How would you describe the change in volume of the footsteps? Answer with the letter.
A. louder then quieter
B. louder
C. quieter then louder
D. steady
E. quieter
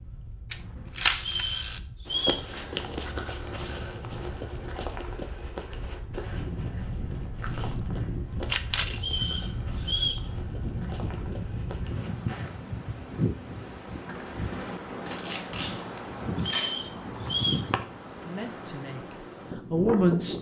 E.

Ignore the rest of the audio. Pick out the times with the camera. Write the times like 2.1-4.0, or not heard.
0.5-1.8, 7.0-9.0, 15.1-16.8.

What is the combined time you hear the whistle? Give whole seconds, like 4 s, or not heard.
4 s.